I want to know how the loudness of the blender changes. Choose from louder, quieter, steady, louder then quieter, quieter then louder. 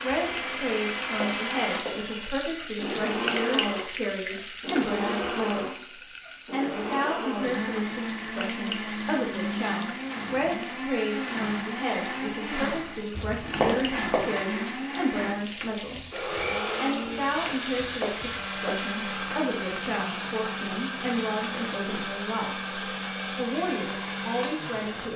steady.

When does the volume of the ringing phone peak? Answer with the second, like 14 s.
14 s.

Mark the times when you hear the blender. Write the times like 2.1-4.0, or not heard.
0.0-25.1.